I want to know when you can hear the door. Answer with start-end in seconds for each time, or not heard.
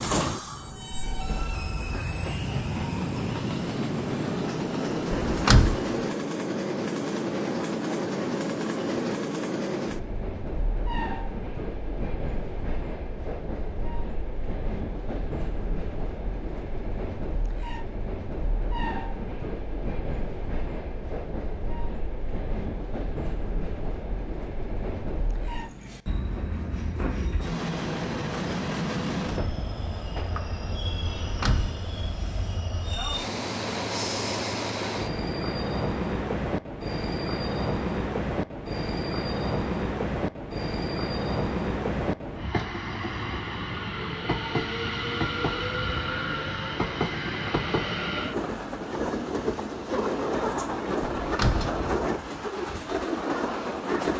5.2-5.8, 31.1-31.8, 51.0-51.7.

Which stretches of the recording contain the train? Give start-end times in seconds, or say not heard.
0.0-54.1.